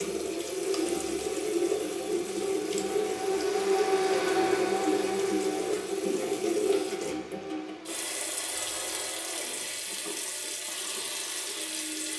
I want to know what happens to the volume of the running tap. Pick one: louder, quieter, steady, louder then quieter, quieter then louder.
quieter.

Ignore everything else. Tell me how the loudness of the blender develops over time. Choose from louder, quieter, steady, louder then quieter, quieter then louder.
louder then quieter.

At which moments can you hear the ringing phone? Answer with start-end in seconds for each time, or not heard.
8.6-9.2.